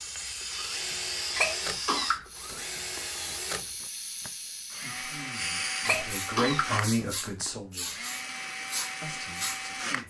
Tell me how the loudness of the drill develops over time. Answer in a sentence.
The loudness of the drill stays about the same.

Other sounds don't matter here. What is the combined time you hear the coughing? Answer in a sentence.
You can hear the coughing for 3 seconds altogether.